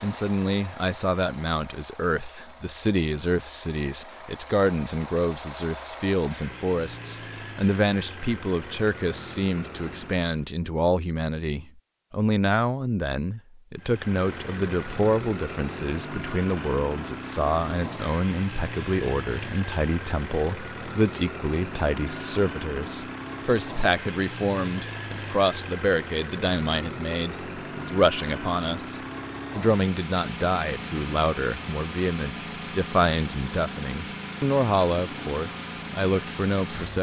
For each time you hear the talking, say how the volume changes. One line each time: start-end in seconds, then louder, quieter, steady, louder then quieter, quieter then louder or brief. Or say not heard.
0.0-36.9 steady.